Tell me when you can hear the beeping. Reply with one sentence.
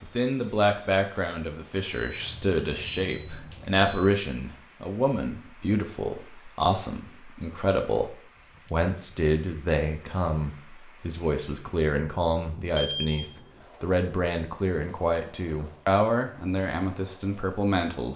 The beeping can be heard from 1.9 to 4.0 s and from 12.8 to 13.3 s.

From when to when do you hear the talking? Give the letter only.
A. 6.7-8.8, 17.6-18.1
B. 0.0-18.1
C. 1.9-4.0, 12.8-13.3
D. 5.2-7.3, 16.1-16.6
B.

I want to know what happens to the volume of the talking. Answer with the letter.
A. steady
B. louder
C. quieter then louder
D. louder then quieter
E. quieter
A.